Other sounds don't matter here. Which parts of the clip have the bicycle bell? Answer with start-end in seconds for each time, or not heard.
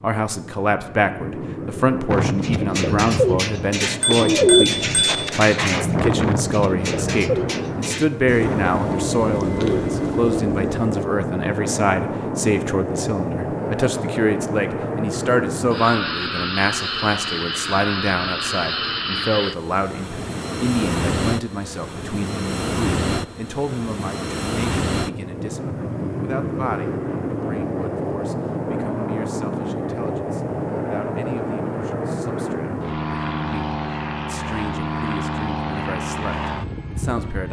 4.0-5.2.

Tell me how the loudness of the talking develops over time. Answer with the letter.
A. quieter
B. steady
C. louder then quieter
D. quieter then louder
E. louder
A.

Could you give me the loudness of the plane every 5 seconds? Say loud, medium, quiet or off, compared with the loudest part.
medium, loud, loud, loud, loud, loud, loud, loud.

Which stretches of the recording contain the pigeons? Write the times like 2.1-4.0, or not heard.
2.0-10.9.